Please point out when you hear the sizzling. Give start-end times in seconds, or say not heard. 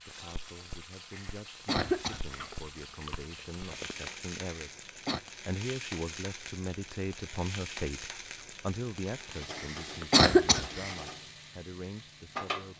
0.0-12.7.